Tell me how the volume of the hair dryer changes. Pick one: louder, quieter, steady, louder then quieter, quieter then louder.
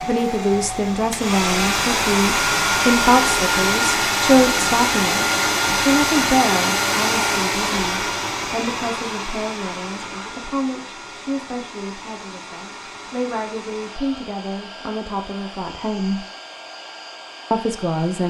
quieter.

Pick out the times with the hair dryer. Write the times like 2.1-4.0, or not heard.
0.0-18.2.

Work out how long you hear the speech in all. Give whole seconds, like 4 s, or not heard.
17 s.